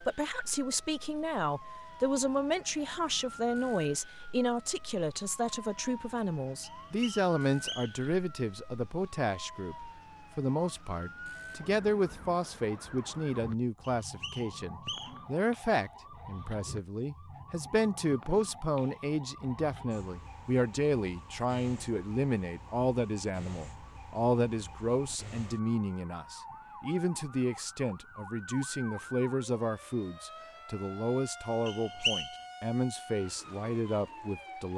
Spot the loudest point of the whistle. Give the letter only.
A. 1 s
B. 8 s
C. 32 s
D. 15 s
C.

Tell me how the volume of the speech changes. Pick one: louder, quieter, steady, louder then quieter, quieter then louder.
steady.